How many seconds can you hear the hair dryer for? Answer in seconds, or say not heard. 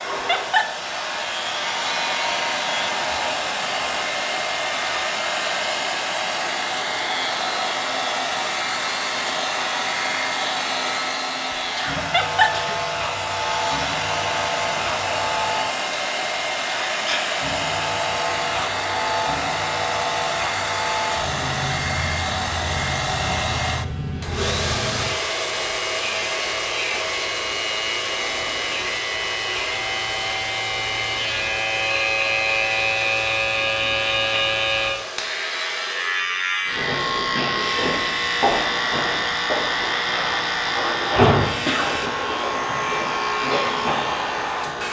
45 s.